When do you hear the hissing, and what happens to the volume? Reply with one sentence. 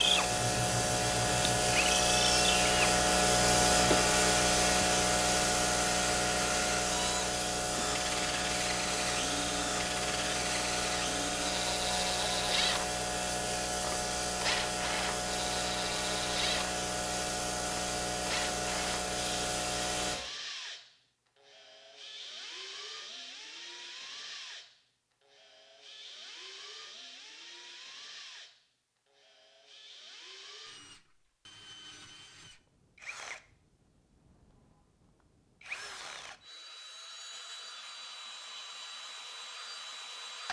The hissing can be heard from 0.0 to 20.2 s, getting quieter.